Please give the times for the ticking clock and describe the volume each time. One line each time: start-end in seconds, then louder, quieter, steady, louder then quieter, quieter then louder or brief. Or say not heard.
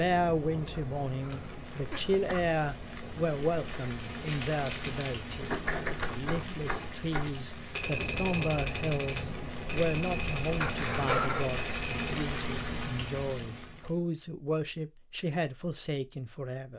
not heard.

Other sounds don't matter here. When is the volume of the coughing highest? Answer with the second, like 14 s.
11 s.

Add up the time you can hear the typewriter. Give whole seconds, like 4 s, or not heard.
8 s.